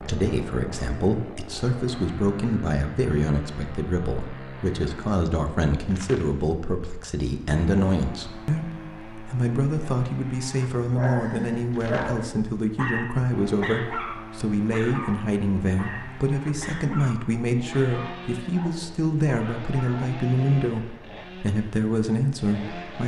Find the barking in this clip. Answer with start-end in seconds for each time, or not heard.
10.8-20.1.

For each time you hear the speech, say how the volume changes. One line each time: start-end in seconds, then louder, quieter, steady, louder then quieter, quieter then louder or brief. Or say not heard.
0.0-23.0 steady.